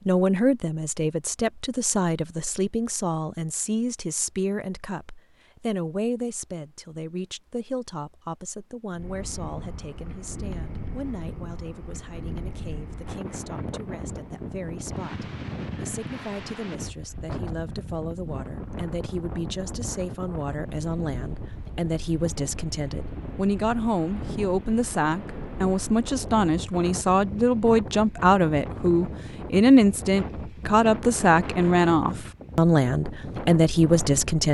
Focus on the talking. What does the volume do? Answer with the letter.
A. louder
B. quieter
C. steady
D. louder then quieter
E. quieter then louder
E.